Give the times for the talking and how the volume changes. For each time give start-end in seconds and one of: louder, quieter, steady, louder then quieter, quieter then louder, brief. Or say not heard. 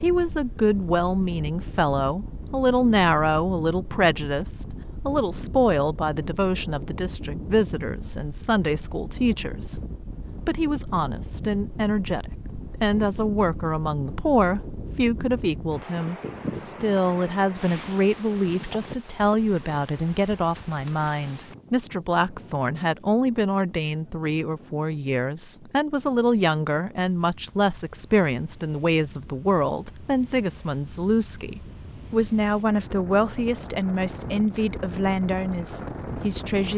0.0-36.7 steady.